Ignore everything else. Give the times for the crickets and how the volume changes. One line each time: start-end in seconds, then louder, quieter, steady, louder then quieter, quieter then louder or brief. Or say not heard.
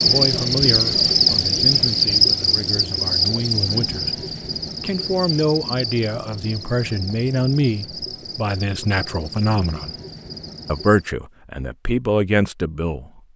0.0-11.1 quieter.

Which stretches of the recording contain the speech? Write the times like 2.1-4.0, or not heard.
0.0-9.9, 10.7-13.2.